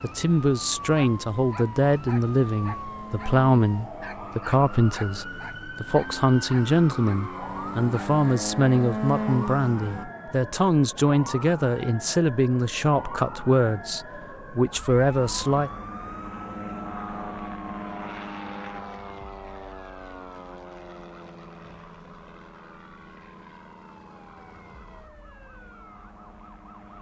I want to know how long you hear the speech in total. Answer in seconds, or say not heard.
16 s.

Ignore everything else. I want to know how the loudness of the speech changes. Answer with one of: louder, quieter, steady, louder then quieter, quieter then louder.
steady.